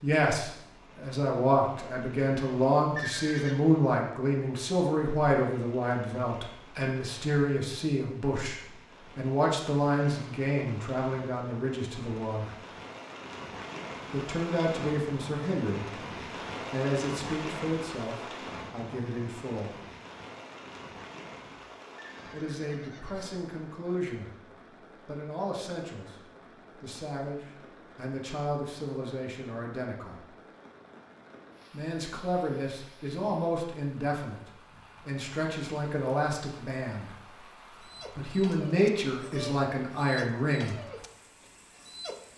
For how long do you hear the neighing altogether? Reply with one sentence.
You can hear the neighing for 2 seconds altogether.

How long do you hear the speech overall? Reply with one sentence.
You can hear the speech for 34 seconds altogether.